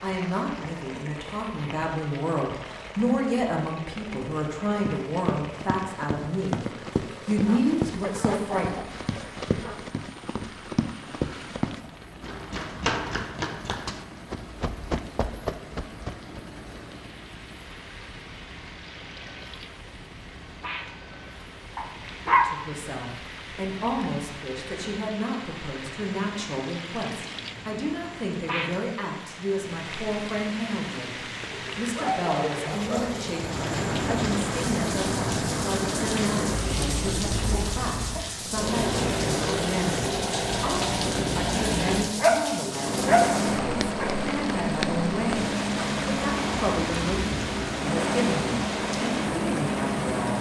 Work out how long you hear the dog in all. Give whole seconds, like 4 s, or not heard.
7 s.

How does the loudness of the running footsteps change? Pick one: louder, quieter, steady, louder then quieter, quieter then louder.
steady.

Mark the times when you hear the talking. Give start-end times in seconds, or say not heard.
0.0-6.6, 7.2-8.9, 22.4-50.3.